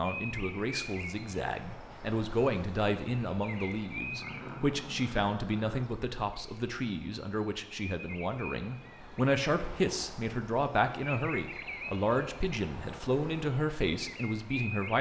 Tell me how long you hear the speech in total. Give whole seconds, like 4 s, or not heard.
15 s.